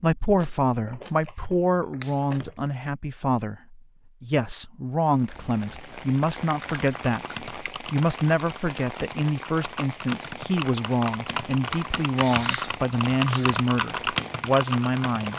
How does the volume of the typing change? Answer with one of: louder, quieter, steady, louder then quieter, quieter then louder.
louder.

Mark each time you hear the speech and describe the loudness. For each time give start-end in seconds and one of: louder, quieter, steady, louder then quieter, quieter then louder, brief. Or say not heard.
0.0-15.3 steady.